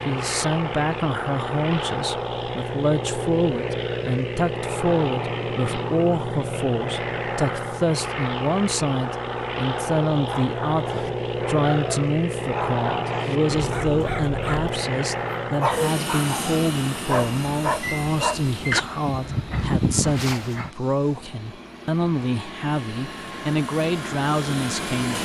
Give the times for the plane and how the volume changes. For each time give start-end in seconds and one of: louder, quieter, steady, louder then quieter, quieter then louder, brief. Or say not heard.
0.0-25.1 quieter.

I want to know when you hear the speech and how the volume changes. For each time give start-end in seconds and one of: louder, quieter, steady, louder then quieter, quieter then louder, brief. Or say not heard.
0.1-25.1 steady.